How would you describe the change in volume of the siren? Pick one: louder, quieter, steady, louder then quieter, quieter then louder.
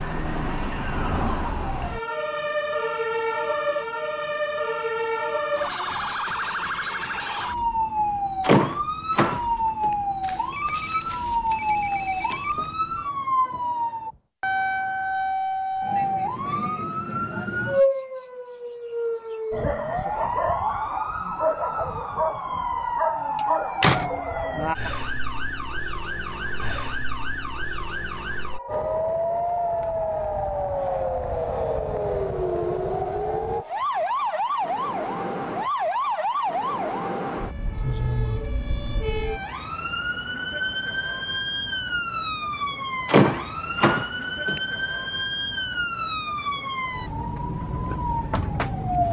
steady.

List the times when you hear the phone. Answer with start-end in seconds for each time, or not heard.
10.2-12.8.